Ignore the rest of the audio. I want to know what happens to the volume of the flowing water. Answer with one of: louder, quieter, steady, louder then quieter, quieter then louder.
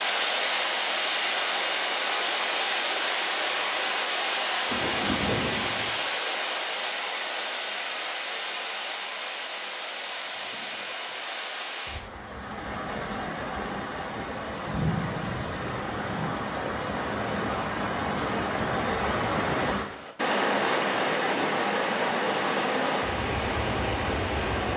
quieter then louder.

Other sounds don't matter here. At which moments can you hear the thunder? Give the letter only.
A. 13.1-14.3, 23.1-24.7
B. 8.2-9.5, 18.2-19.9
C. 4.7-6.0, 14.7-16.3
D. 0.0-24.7
C.